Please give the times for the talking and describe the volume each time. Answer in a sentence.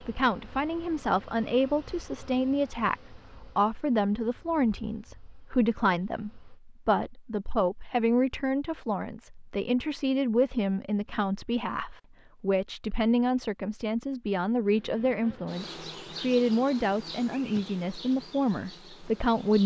You can hear the talking from 0.0 to 19.6 s, at a steady volume.